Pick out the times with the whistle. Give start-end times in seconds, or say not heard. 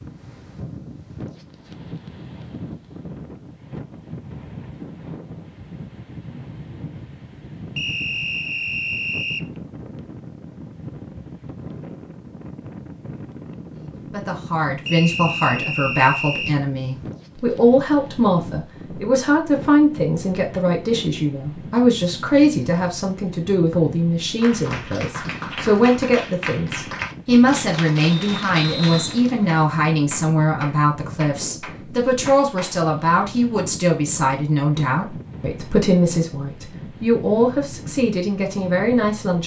7.8-9.4, 14.8-16.6, 28.1-29.6.